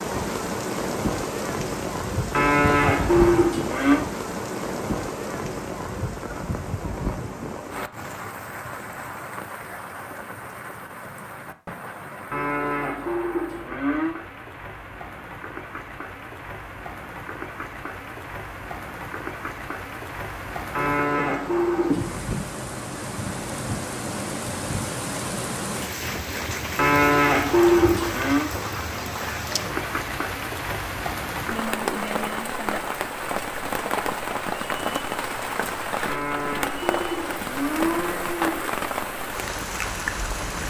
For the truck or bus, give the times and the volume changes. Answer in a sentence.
The truck or bus can't be heard in this clip.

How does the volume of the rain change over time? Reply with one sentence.
The loudness of the rain goes down, then up.